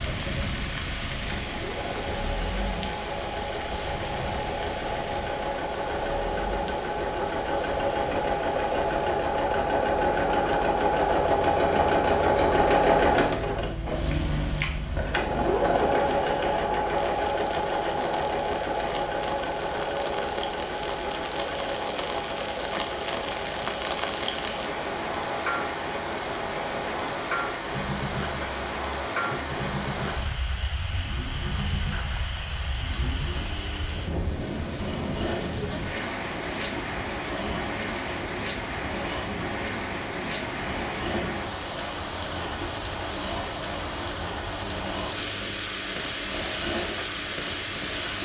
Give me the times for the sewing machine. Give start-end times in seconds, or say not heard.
0.0-48.2.